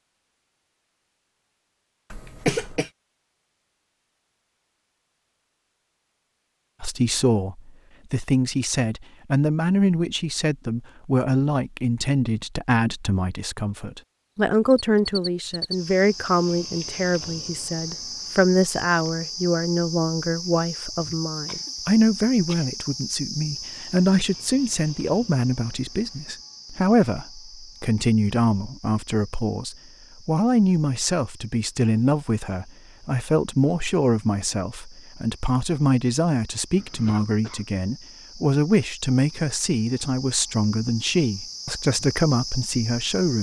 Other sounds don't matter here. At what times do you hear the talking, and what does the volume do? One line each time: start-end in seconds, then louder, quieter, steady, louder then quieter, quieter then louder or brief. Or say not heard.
6.8-43.3 steady.